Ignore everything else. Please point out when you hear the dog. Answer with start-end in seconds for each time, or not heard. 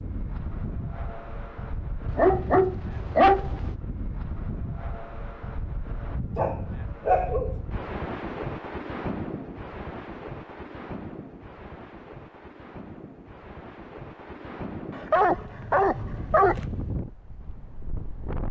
2.0-3.8, 6.3-7.6, 14.9-16.6.